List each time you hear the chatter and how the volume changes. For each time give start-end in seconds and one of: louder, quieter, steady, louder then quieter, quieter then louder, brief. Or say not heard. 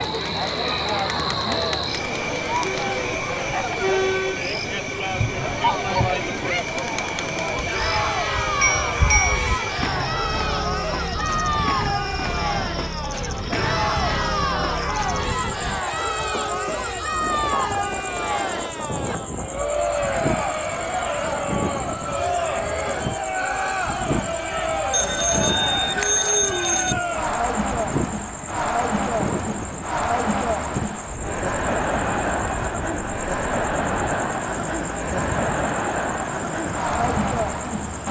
0.0-38.0 steady.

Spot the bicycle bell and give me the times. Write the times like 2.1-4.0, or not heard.
7.6-9.6, 24.9-26.9.